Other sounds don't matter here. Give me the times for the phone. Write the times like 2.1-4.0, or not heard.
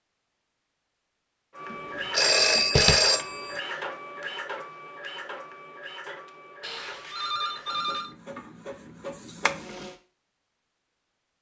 1.7-3.6, 6.6-8.1.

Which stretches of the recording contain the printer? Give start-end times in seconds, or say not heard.
1.5-10.0.